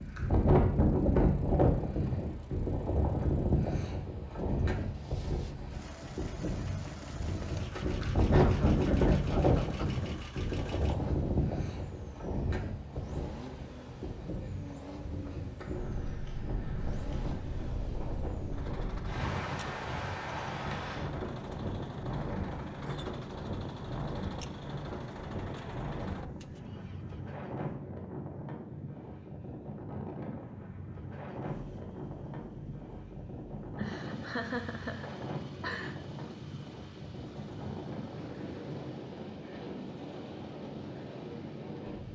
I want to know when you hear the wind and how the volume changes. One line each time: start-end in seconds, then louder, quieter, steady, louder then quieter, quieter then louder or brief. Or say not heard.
0.0-42.1 quieter.